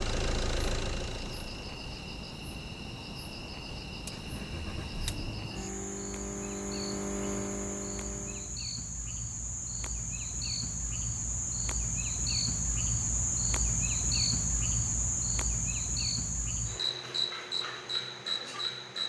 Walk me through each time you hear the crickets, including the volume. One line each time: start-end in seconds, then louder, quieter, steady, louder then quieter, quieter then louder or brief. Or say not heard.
0.0-19.0 louder.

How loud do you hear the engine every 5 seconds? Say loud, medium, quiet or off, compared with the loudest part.
loud, loud, off, off.